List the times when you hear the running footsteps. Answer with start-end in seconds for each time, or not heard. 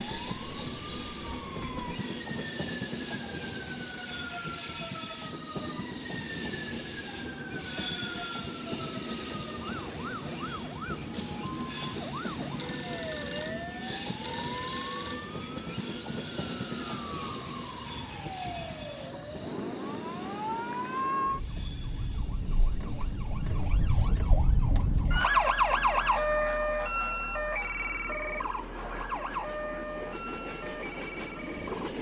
not heard.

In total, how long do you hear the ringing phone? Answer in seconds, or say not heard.
3 s.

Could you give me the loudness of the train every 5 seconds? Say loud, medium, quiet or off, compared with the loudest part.
loud, loud, loud, loud, quiet, medium, loud.